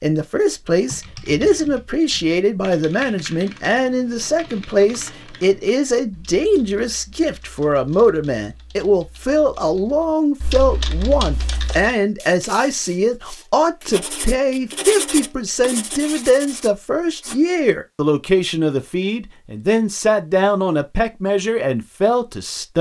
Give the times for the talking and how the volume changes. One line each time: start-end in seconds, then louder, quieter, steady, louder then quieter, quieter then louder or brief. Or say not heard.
0.0-22.7 steady.